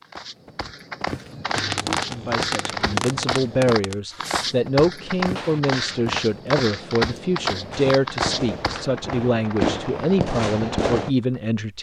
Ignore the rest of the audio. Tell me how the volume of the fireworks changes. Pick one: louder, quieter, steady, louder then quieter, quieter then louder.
quieter then louder.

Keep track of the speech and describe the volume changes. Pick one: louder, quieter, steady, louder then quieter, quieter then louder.
steady.